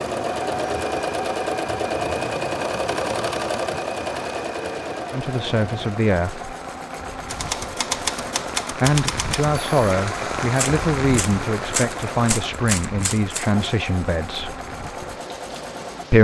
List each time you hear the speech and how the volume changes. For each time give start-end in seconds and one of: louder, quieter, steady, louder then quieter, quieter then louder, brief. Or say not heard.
5.1-6.5 brief
8.7-14.6 steady.